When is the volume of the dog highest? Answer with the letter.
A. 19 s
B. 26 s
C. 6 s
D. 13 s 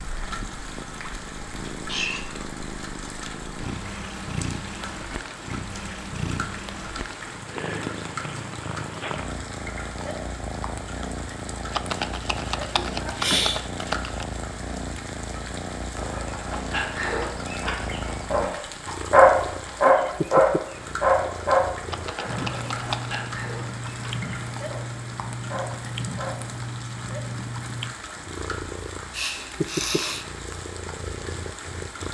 A.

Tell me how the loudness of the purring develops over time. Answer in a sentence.
The loudness of the purring stays about the same.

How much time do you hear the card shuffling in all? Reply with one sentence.
The card shuffling can be heard for 4 seconds in total.